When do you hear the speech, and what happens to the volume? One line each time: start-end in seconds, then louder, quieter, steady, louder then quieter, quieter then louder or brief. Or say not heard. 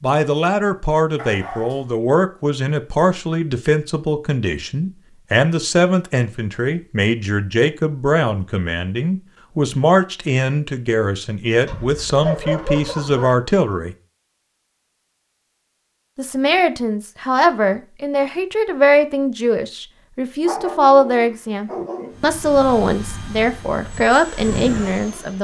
0.0-13.9 steady
16.1-25.3 steady.